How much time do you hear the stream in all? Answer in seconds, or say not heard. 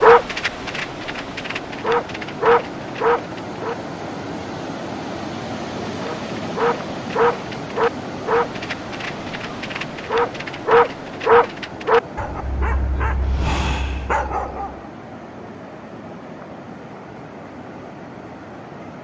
19 s.